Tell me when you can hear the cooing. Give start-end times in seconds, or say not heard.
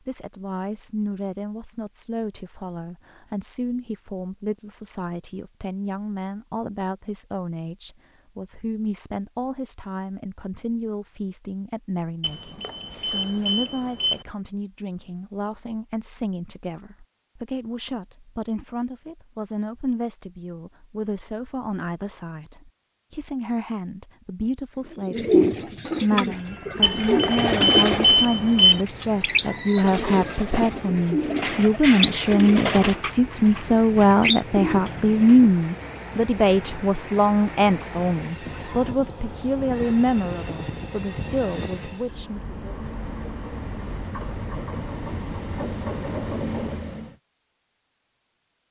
24.8-35.5.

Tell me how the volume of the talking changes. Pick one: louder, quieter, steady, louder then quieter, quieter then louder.
louder.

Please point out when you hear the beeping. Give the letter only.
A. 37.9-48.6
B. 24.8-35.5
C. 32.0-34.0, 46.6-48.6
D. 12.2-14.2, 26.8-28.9
D.